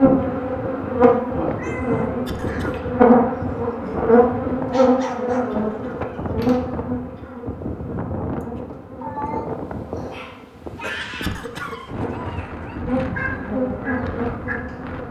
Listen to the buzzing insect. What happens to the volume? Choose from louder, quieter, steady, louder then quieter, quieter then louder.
quieter then louder.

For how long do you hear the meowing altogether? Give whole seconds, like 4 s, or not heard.
2 s.